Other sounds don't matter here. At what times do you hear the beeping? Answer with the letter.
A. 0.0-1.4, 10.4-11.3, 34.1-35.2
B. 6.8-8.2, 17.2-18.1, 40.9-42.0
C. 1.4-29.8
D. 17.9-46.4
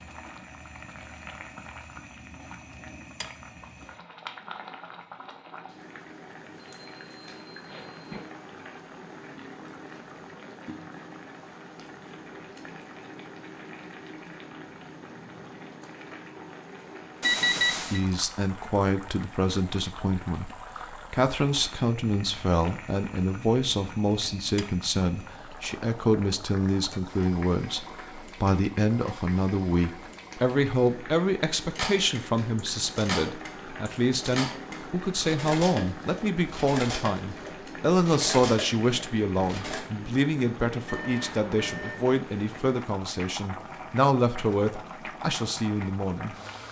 B.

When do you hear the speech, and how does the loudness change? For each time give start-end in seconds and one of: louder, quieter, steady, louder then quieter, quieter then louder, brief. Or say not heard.
17.9-46.4 steady.